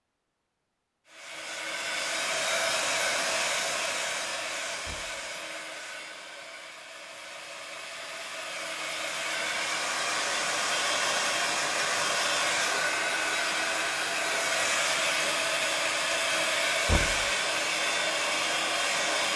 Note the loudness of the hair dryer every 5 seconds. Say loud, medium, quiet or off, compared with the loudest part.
loud, medium, loud, loud.